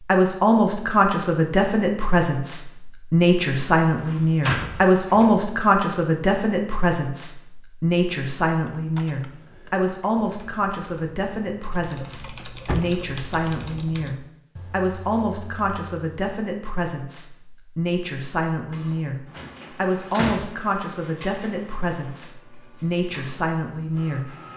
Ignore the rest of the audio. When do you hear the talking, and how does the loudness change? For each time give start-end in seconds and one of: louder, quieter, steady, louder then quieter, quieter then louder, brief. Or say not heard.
0.1-24.4 quieter.